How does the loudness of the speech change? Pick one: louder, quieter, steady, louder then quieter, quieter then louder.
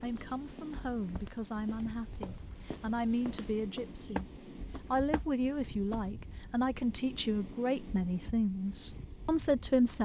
louder.